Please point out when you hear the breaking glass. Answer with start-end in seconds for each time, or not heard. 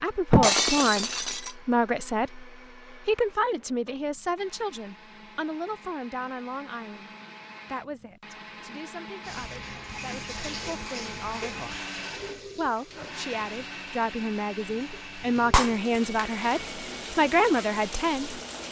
0.3-1.6, 15.5-16.4.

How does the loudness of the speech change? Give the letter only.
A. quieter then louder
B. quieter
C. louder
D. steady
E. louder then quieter
A.